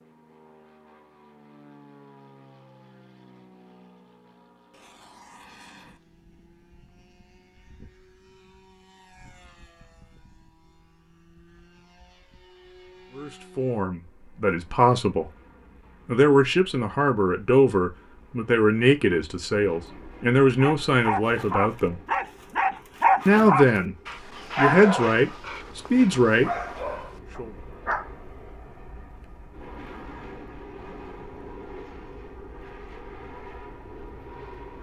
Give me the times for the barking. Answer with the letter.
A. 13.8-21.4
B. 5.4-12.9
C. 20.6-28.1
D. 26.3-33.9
C.